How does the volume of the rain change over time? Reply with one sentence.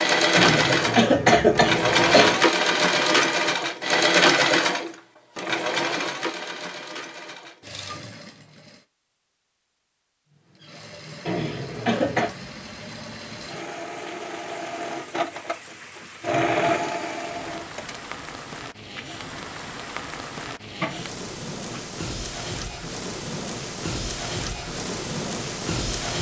The volume of the rain goes up.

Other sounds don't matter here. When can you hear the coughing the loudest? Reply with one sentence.
The loudest moment of the coughing is at 1 second.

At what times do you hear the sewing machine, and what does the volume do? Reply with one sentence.
The sewing machine can be heard from 0.0 to 8.8 s, getting quieter; and from 10.3 to 18.0 s, getting louder.